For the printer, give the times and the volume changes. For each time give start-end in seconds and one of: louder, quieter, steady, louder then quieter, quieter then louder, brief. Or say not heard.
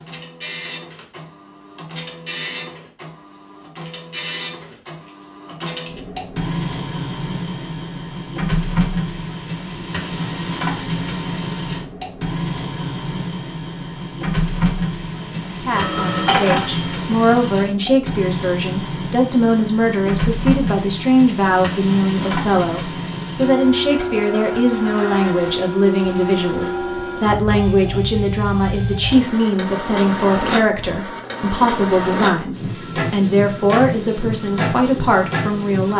0.0-35.9 steady.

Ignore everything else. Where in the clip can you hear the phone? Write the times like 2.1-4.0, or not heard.
15.8-16.9.